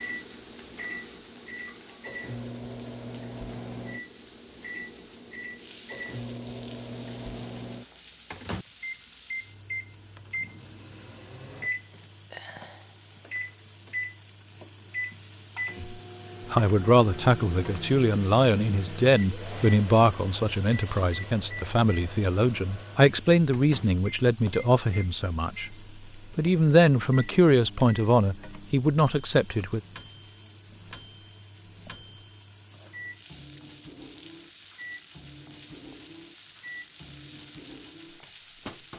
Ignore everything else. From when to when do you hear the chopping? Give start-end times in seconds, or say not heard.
not heard.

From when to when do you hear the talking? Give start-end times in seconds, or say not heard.
15.8-29.8.